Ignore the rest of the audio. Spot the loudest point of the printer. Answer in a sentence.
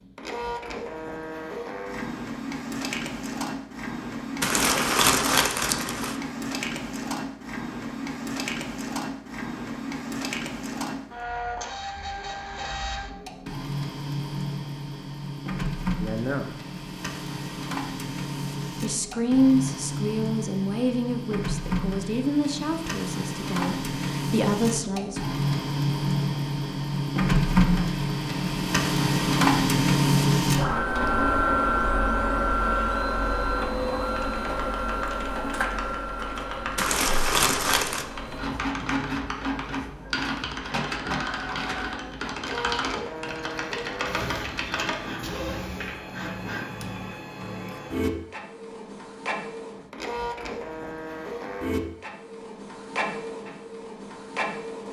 The volume of the printer peaks at 30 seconds.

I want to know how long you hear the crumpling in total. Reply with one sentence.
The crumpling can be heard for 3 seconds in total.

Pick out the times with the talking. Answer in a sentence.
The talking can be heard from 15.9 to 16.6 s and from 18.8 to 25.2 s.